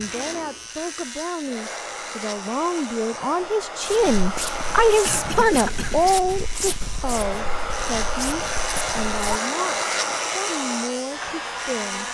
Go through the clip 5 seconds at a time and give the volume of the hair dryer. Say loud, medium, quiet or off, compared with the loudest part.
medium, loud, loud.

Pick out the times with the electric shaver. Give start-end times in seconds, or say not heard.
0.0-12.0.